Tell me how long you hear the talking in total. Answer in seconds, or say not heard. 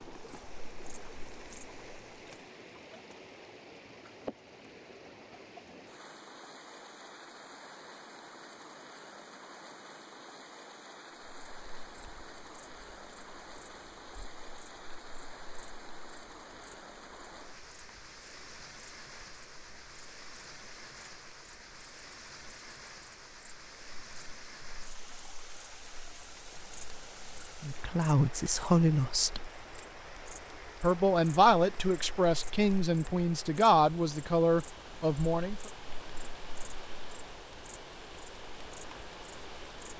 7 s.